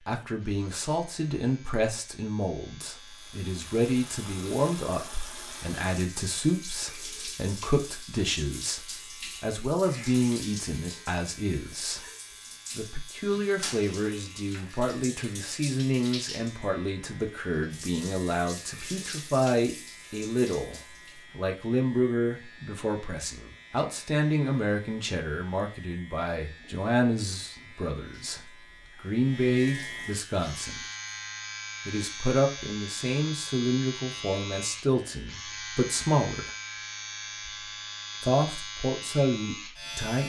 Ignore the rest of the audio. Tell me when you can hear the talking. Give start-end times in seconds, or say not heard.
0.1-12.0, 12.8-30.9, 31.9-36.5, 38.2-40.2.